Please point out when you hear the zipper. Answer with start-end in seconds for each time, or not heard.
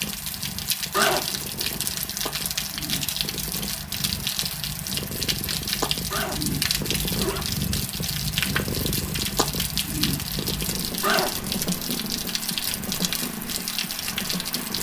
0.9-1.8, 6.1-7.5, 11.0-11.6.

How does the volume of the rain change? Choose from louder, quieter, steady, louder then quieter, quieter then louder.
steady.